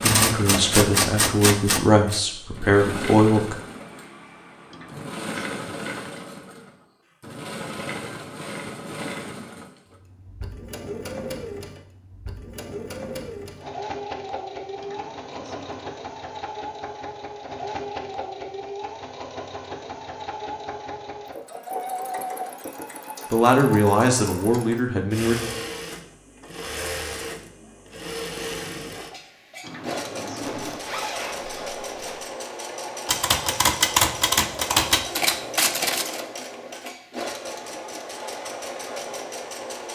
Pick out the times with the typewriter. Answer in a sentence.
You can hear the typewriter from 0.0 to 2.2 s and from 33.0 to 36.2 s.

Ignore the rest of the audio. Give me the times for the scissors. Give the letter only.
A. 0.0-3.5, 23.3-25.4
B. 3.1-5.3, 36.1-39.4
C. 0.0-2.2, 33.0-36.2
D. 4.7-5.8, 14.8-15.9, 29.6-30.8
D.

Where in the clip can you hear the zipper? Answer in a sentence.
The zipper can be heard from 30.4 to 32.2 s.